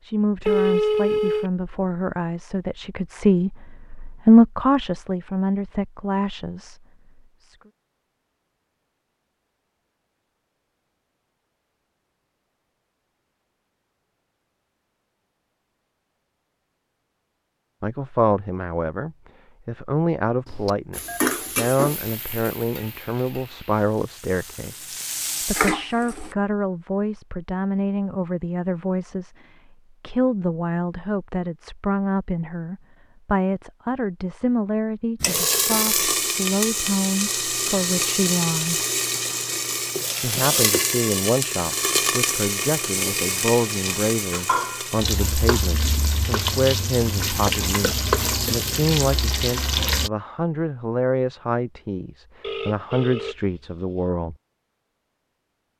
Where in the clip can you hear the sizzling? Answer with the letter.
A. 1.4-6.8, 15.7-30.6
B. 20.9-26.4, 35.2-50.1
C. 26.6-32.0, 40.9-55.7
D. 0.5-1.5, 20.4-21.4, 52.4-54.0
B.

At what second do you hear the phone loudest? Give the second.
1 s.